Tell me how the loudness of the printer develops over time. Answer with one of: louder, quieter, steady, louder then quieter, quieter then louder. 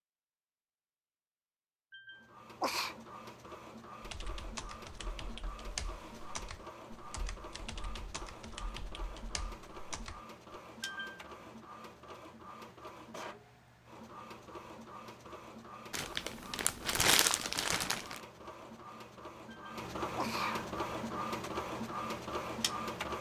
louder.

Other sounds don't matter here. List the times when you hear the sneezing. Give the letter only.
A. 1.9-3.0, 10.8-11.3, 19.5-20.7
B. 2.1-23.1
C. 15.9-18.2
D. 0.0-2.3
A.